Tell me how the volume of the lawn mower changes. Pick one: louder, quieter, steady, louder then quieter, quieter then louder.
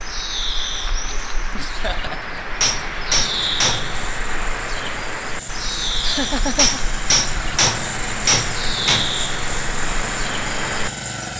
louder.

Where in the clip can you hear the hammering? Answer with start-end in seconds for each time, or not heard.
2.6-4.0, 6.5-9.1.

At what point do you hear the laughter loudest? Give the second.
6 s.